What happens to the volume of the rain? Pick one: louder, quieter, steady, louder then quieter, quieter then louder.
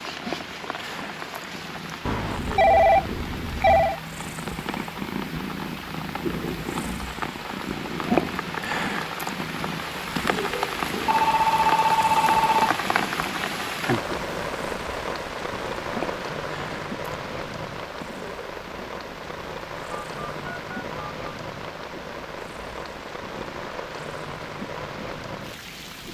louder then quieter.